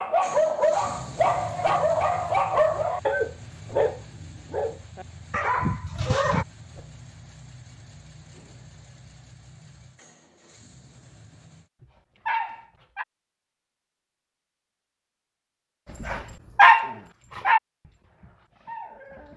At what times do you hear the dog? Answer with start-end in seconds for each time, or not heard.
0.0-6.5, 11.8-13.1, 16.0-17.6, 18.2-19.3.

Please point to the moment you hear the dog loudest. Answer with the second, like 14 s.
17 s.